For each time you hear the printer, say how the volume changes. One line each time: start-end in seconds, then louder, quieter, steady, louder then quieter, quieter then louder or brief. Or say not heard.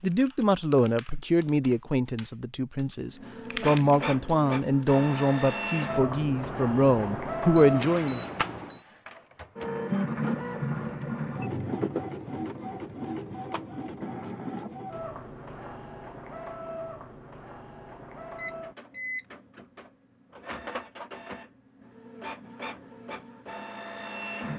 3.1-24.5 quieter.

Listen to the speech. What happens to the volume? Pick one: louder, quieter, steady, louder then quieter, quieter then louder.
quieter then louder.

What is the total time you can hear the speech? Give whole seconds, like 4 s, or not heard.
8 s.